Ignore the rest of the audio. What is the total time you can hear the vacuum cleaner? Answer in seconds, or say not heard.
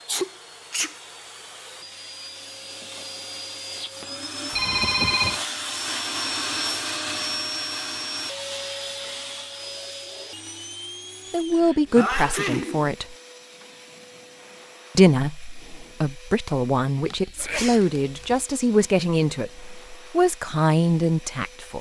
22 s.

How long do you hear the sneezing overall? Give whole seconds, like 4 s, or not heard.
3 s.